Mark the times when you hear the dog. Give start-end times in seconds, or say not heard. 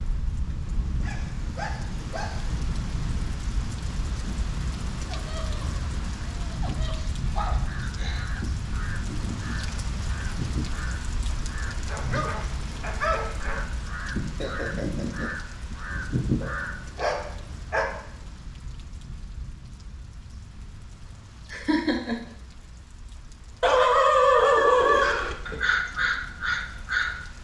1.0-2.5, 6.8-8.4, 11.8-13.7, 16.4-18.0, 23.6-25.6.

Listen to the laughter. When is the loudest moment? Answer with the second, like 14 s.
22 s.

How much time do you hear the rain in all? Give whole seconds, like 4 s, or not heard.
27 s.